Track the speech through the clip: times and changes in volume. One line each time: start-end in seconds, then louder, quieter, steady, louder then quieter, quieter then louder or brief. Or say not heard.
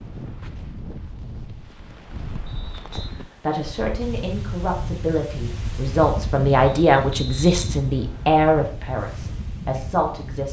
2.9-10.4 louder then quieter.